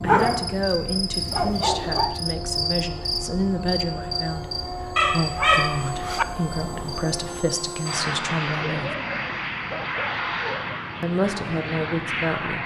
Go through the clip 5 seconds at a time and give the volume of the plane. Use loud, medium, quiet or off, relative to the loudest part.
medium, loud, loud.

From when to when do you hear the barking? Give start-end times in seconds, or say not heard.
0.1-2.1, 5.0-6.2, 8.6-10.8.